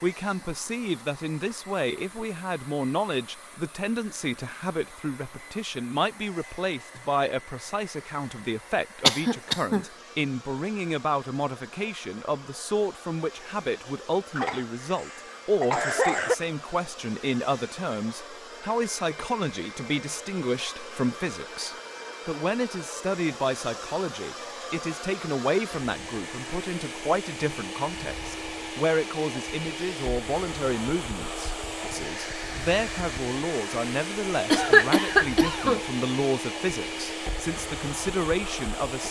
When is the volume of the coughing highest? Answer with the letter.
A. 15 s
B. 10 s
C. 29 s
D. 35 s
D.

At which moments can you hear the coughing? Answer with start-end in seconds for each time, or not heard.
9.1-9.8, 14.3-16.4, 34.5-35.8.